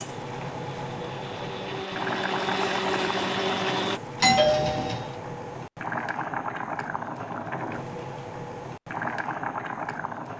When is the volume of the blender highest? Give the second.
3 s.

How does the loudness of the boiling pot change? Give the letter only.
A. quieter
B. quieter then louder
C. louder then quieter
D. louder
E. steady
E.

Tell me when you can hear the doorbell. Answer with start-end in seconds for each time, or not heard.
4.2-5.1.